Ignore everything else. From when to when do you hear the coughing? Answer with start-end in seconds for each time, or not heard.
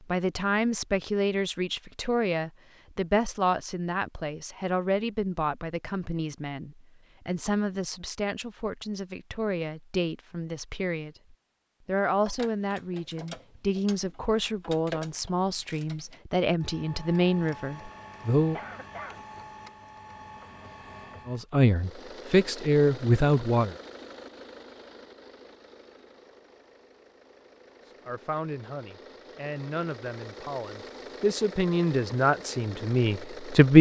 18.5-19.2.